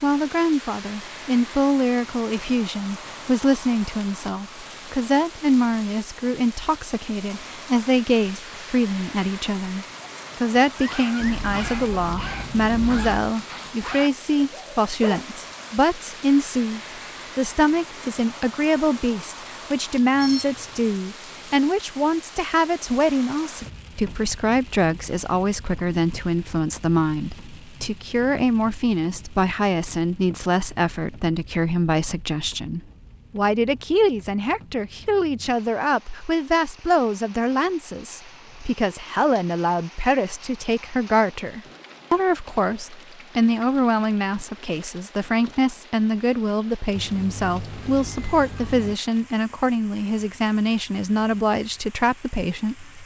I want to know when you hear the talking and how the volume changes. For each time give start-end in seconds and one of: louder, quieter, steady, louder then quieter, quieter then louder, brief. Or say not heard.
0.0-53.0 steady.